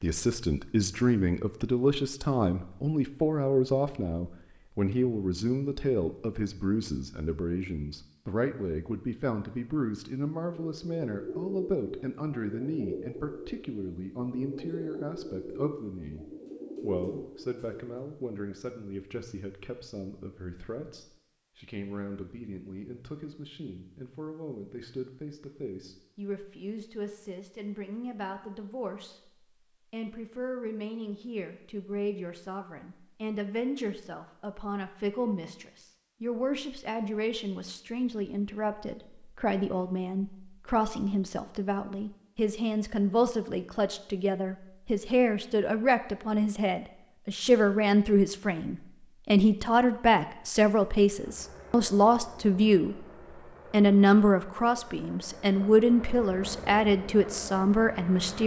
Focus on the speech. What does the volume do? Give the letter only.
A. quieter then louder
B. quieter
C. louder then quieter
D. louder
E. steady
A.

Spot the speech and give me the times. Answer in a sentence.
You can hear the speech from 0.0 to 53.0 s and from 53.7 to 58.4 s.